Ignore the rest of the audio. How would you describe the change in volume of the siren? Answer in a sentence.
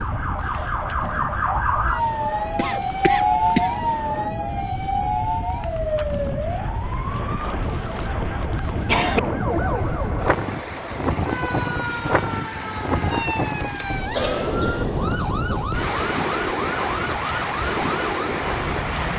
The loudness of the siren goes down.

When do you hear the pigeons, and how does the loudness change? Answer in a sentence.
The pigeons can't be heard in this clip.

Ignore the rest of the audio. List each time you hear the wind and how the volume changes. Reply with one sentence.
The wind can be heard from 0.0 to 19.1 s, getting louder.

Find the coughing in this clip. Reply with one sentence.
The coughing can be heard from 2.5 to 3.8 s, from 8.2 to 9.2 s and from 14.1 to 15.7 s.